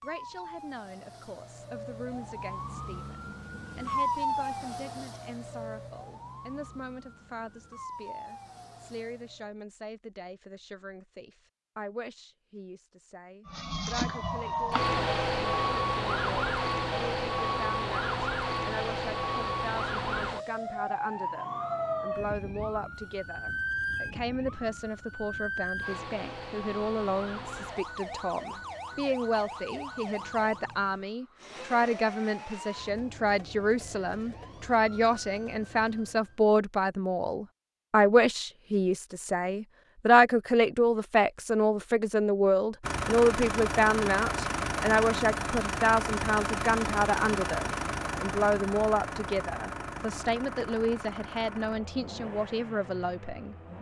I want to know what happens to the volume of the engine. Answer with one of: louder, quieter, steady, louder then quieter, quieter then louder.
quieter.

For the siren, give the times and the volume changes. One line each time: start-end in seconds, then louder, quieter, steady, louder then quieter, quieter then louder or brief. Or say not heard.
0.0-9.6 louder then quieter
13.4-36.4 quieter.